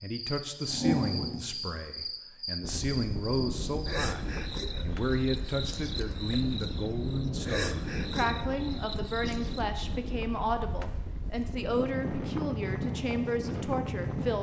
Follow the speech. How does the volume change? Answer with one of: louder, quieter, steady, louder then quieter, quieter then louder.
steady.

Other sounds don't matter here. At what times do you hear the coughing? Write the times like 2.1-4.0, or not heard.
not heard.